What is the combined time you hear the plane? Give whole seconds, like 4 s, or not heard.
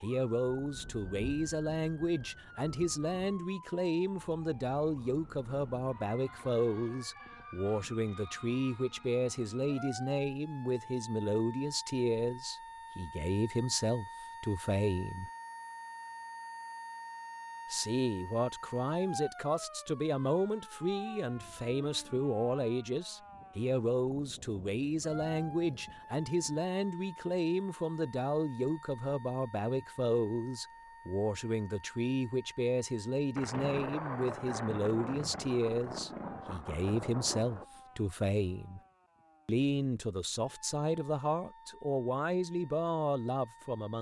not heard.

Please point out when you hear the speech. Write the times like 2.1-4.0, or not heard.
0.0-15.3, 17.7-38.8, 39.5-43.9.